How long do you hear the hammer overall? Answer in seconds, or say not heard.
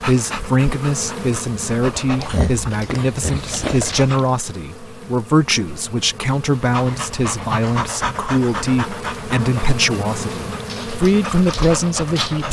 not heard.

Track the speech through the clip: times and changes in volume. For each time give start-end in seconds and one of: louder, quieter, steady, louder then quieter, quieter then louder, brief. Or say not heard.
0.1-12.4 steady.